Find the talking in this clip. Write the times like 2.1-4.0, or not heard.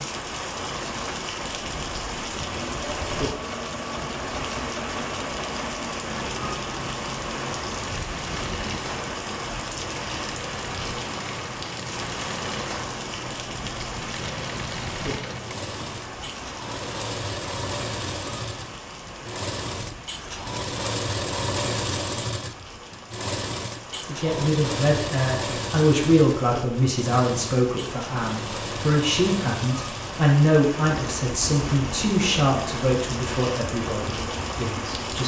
24.0-35.2.